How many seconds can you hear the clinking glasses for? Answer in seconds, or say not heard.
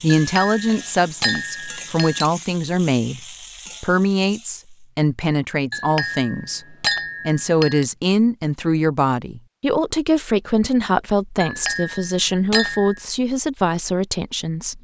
6 s.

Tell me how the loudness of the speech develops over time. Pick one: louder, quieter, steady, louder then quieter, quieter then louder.
steady.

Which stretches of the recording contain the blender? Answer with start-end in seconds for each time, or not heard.
not heard.